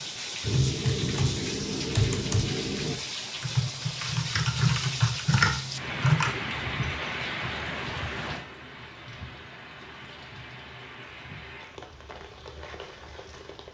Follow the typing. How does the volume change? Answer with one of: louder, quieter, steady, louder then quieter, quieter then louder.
steady.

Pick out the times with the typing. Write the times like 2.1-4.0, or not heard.
0.4-6.4.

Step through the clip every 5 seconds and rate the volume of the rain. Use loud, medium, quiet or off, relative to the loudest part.
loud, loud, medium.